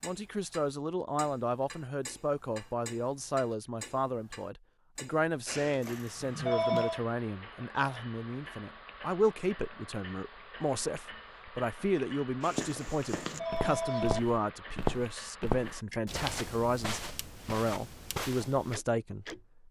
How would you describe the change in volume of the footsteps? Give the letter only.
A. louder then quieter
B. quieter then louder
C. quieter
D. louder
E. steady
A.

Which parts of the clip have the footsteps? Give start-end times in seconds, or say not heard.
12.4-18.8.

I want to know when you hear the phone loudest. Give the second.
7 s.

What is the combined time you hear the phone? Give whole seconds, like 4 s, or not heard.
3 s.